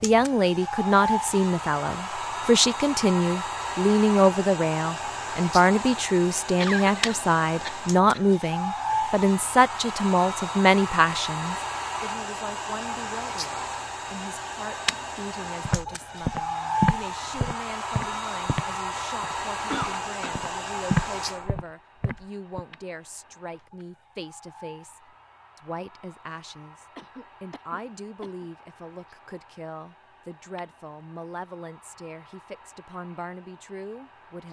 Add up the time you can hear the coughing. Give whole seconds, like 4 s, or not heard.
4 s.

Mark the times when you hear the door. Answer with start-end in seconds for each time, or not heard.
not heard.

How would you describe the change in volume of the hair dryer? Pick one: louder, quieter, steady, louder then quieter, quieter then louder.
quieter.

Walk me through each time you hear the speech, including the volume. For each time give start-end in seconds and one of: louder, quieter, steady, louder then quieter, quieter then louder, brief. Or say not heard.
0.0-34.4 quieter.